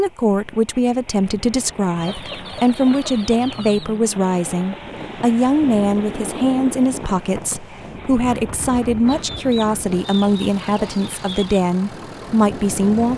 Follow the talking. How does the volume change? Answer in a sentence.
The volume of the talking stays about the same.